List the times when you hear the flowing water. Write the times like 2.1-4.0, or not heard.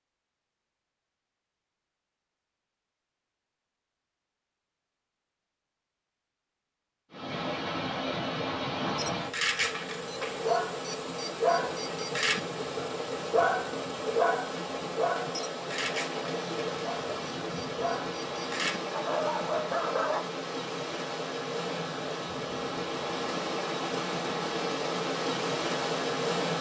7.1-26.5.